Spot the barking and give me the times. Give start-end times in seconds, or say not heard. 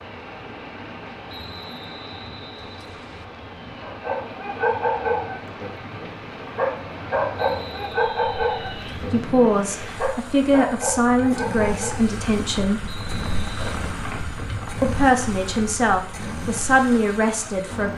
3.8-12.2.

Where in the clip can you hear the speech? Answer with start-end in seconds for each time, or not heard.
9.1-12.9, 14.8-17.9.